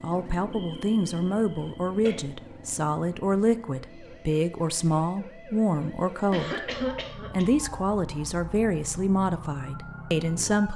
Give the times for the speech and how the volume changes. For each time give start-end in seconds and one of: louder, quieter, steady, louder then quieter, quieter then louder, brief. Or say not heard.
0.0-10.7 steady.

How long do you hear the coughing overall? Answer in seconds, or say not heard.
3 s.